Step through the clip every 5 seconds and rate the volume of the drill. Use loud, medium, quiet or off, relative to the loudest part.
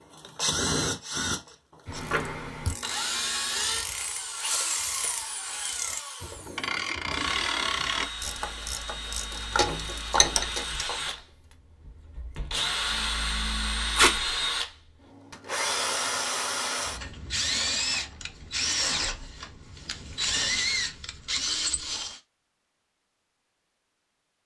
loud, medium, loud, loud, loud.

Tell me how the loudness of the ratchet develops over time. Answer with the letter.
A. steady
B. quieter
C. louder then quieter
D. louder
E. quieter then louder
D.